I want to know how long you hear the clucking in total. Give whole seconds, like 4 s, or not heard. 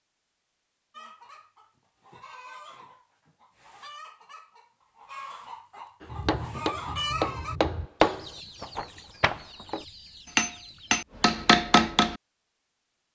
10 s.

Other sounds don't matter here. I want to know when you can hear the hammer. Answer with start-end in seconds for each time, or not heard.
6.0-12.2.